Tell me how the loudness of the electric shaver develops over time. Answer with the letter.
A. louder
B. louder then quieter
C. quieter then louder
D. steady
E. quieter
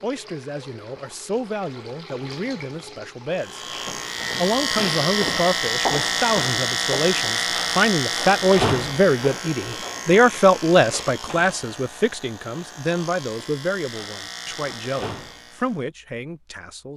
E.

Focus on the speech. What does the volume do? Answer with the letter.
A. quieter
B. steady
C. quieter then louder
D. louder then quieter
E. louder
D.